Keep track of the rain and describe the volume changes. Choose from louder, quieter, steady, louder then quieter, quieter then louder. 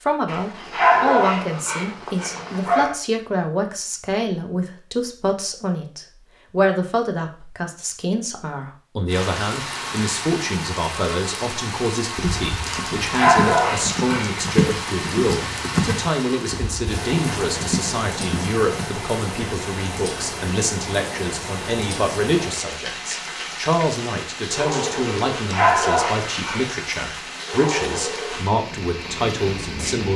steady.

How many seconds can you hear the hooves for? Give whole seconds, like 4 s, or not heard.
7 s.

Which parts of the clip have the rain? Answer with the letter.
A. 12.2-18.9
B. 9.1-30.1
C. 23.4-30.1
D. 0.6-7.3
B.